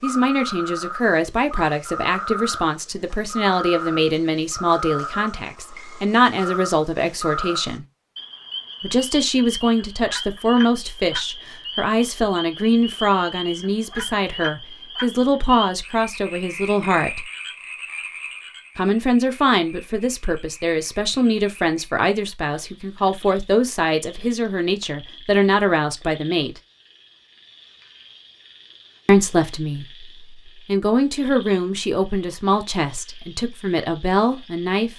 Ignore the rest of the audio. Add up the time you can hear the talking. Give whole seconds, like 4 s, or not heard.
30 s.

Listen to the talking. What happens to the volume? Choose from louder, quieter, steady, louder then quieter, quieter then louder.
steady.